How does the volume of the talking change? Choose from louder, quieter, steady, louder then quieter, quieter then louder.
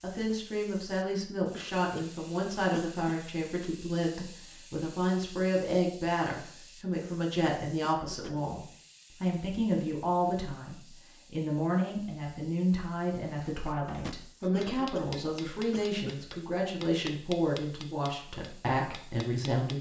steady.